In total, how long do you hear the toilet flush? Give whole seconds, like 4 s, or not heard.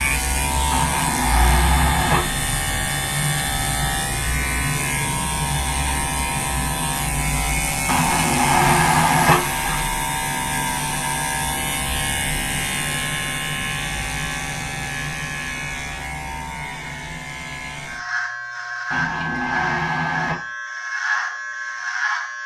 5 s.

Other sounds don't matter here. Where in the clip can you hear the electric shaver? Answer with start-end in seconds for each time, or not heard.
0.0-22.4.